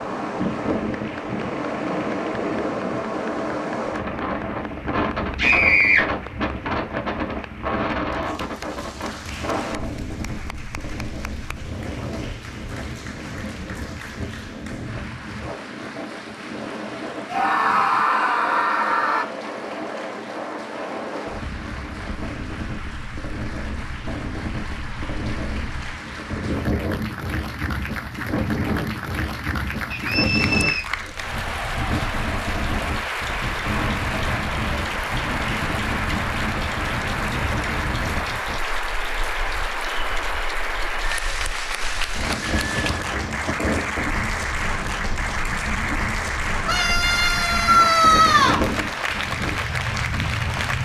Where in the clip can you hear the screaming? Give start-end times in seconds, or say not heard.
5.3-6.0, 17.2-19.2, 46.6-48.6.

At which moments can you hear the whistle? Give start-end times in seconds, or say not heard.
29.9-30.9.